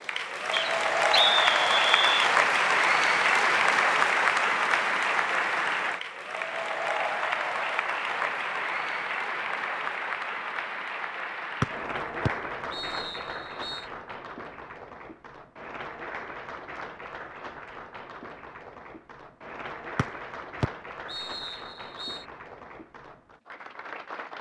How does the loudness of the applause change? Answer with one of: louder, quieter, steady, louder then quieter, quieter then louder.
quieter.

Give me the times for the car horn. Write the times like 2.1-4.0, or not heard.
not heard.